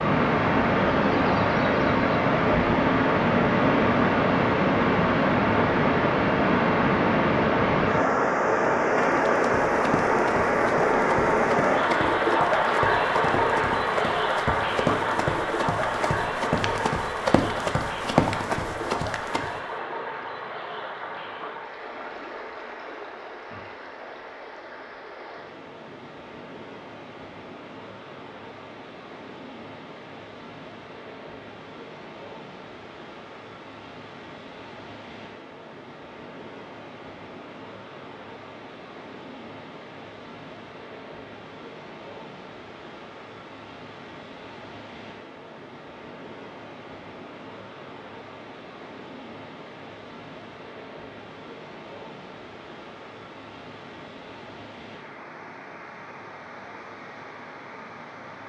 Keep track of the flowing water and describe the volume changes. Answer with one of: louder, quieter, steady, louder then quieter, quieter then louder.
quieter.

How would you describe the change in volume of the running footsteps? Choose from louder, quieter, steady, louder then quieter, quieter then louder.
louder.